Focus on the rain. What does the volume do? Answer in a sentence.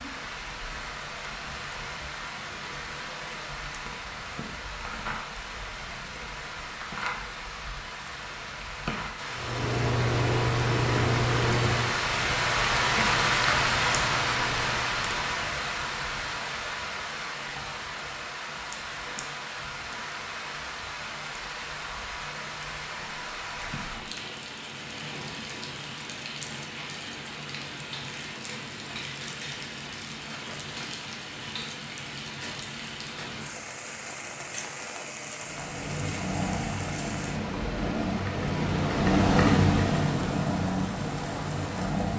The volume of the rain goes up, then down.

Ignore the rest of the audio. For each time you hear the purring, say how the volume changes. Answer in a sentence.
The purring can be heard from 9.3 to 15.1 s, getting quieter; and from 35.4 to 42.1 s, getting louder then quieter.